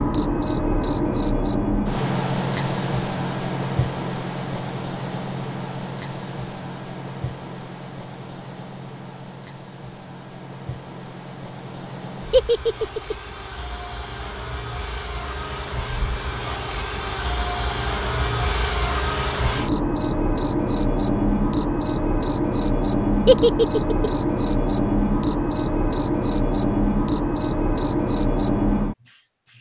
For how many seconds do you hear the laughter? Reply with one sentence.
The laughter can be heard for 2 seconds in total.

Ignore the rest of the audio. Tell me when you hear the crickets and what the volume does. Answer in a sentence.
You can hear the crickets from 0.0 to 29.5 s, getting quieter then louder.